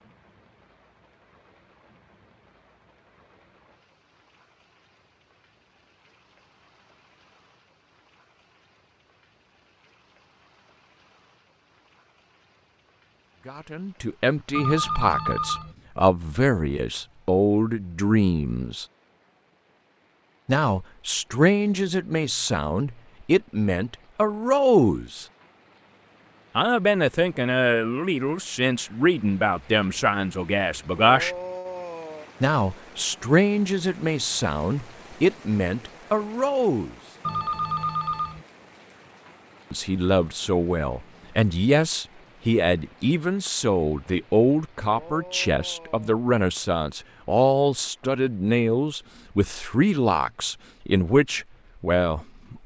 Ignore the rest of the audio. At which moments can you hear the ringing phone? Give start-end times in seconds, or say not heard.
14.6-15.8, 37.2-38.5.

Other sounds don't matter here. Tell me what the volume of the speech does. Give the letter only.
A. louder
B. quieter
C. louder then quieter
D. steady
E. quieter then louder
D.